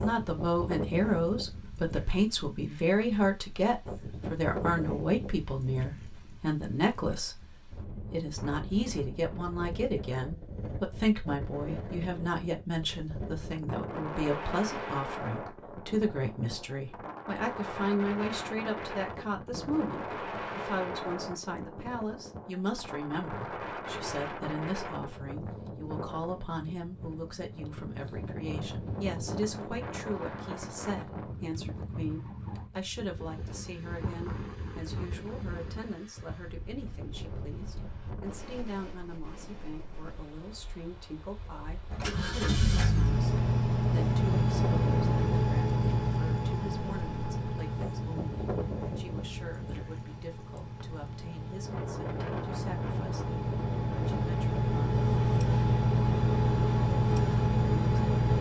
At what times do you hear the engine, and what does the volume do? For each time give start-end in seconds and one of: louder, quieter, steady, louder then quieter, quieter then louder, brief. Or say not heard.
41.9-58.3 quieter then louder.